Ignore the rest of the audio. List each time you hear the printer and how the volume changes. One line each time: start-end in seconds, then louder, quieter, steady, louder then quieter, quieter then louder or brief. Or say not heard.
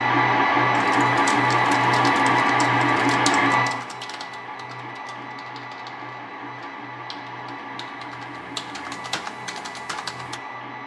0.0-10.8 quieter.